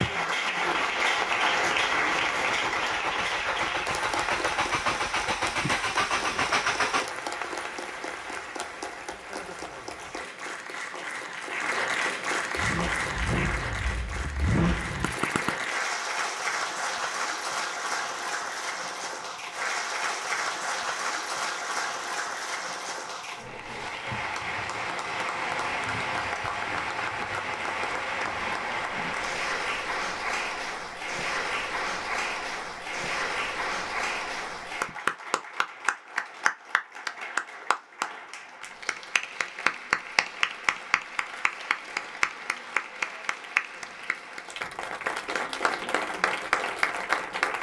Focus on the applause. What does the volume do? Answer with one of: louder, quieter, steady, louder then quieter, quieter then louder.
steady.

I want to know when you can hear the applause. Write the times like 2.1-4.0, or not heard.
0.0-47.5.